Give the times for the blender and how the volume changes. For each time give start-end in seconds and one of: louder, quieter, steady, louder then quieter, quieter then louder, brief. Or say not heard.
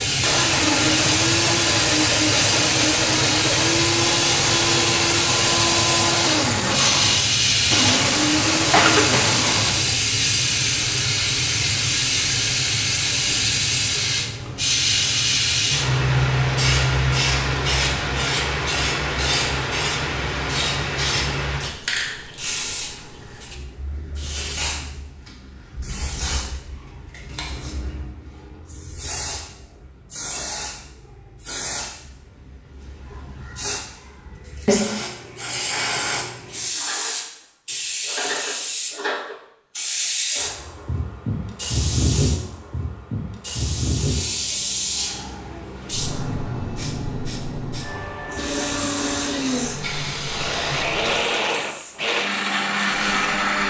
0.1-10.0 steady
48.4-53.6 quieter then louder.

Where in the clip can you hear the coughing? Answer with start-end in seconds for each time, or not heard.
8.7-9.3.